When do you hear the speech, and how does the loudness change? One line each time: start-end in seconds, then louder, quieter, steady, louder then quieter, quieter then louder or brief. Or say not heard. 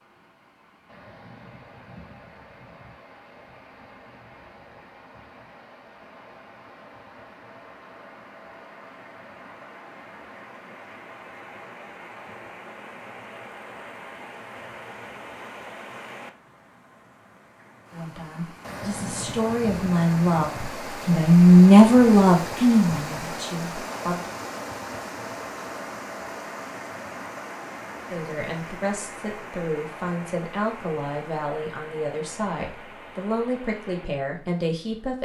17.9-24.3 louder then quieter
28.1-35.1 steady.